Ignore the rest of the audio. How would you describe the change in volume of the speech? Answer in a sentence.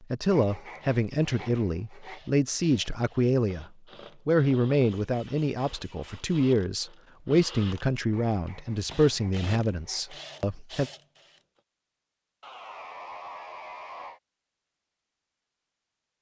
The loudness of the speech stays about the same.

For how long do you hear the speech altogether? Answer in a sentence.
The speech can be heard for 11 seconds in total.